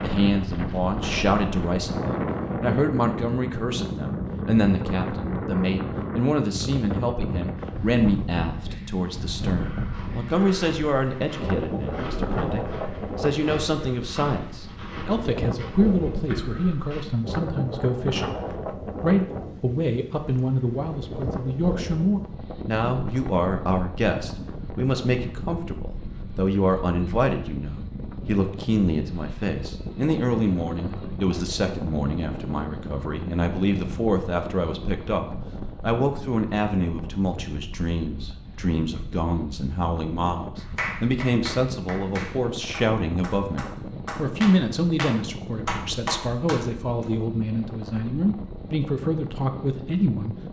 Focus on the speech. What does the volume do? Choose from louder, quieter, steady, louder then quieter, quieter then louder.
steady.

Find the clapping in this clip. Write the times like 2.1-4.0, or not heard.
40.6-47.0.